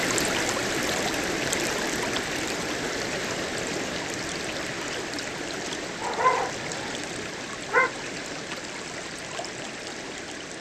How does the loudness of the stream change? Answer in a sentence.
The volume of the stream goes down.